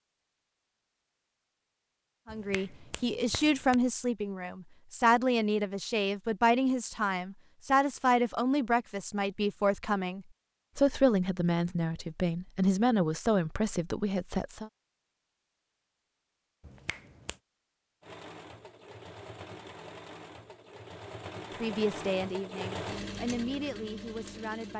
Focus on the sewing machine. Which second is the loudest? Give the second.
23 s.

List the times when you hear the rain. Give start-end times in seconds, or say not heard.
not heard.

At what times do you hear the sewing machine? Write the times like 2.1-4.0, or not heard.
18.0-24.7.